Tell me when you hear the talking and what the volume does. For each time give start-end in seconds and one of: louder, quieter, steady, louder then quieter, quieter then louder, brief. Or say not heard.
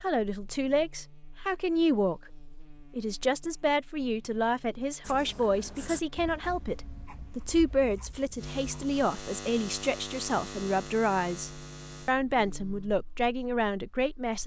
0.0-14.4 steady.